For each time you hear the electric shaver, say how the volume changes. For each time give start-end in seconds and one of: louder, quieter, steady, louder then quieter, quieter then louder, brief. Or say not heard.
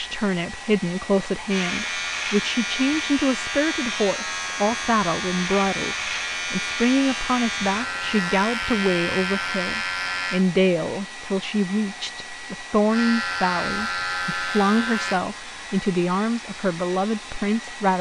1.4-10.4 steady
12.9-15.2 brief.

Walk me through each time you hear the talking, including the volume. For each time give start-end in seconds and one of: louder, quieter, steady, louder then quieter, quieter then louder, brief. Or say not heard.
0.0-17.9 steady.